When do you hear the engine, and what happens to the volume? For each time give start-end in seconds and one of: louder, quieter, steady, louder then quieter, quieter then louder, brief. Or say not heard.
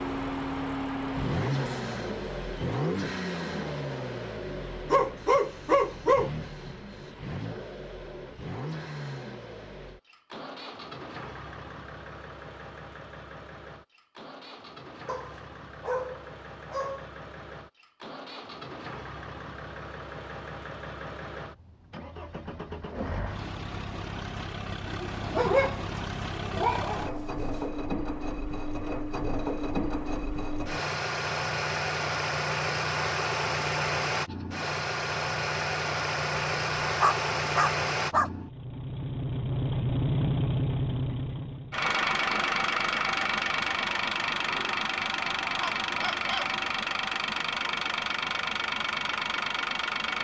0.0-50.2 quieter then louder.